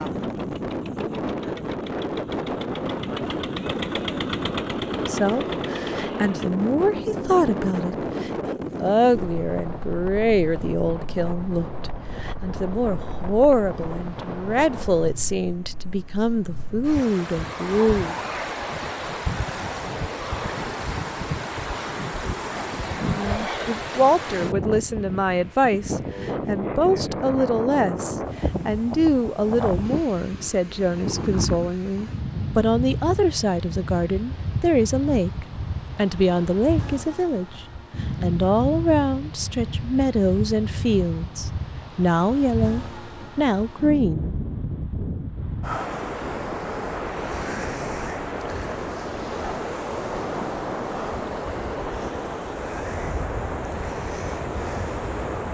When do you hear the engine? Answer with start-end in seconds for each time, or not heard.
0.0-6.5.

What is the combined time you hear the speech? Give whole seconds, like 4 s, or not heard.
34 s.